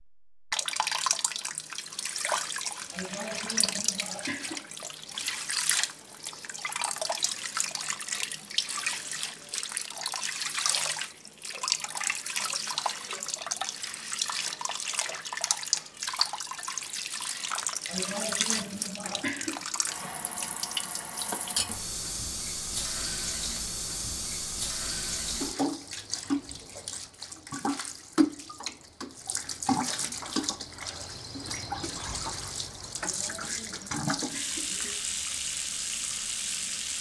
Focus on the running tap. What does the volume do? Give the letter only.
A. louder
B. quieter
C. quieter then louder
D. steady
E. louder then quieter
D.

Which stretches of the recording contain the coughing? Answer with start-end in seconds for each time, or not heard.
2.9-4.6, 17.9-19.6, 33.0-35.0.